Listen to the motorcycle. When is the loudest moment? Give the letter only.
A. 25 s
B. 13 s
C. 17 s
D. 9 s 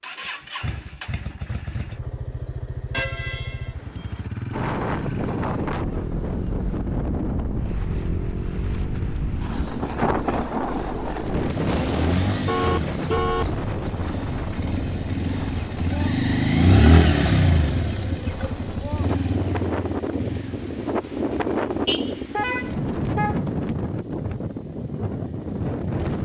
C.